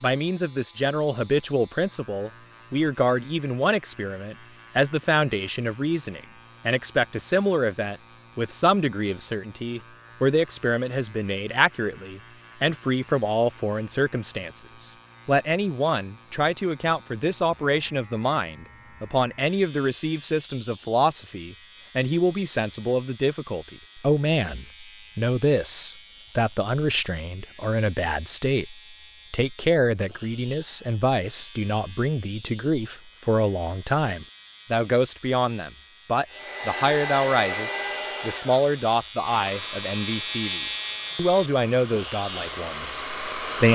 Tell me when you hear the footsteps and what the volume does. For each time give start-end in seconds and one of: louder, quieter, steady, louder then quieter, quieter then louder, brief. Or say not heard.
not heard.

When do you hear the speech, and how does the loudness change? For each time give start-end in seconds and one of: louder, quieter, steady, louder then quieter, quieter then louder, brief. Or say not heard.
0.0-43.7 steady.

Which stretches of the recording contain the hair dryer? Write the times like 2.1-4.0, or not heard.
36.3-43.7.